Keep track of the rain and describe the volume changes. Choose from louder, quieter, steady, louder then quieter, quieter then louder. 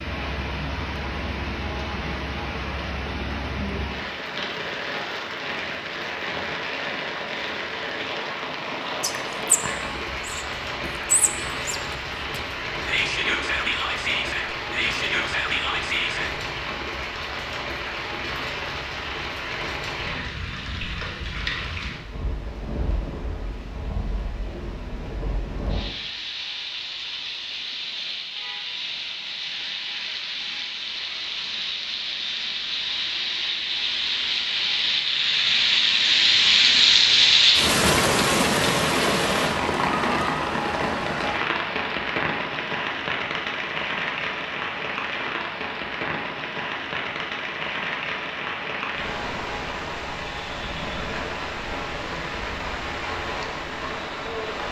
louder then quieter.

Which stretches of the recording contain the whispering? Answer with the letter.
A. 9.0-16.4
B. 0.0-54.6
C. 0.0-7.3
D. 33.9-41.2
A.